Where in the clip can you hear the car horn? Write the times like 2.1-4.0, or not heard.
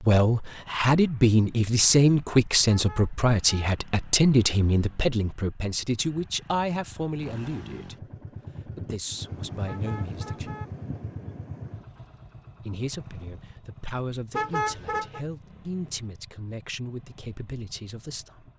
2.6-3.7, 9.7-10.7, 14.3-15.2.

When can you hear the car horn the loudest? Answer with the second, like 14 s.
15 s.